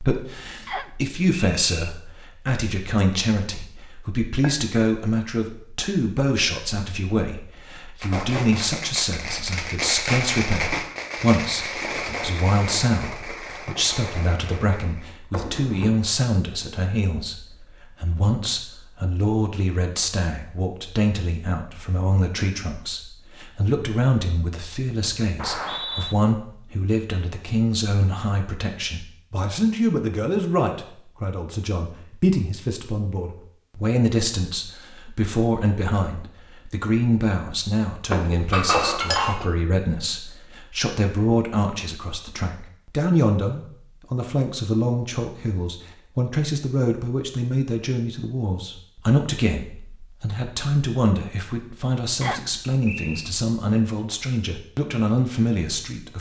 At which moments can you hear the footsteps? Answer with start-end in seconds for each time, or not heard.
not heard.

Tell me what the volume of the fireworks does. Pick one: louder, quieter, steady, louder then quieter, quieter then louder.
louder then quieter.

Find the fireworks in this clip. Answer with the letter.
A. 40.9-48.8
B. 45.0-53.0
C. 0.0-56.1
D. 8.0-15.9
D.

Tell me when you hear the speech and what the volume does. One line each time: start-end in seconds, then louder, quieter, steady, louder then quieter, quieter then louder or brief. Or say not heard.
0.0-56.1 steady.